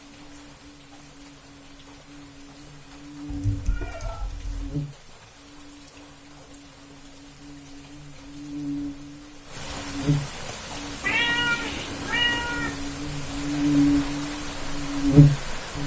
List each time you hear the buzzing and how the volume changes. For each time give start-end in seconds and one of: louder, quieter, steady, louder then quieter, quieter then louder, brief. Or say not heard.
0.0-15.8 louder.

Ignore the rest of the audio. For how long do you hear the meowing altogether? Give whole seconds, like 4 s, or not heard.
3 s.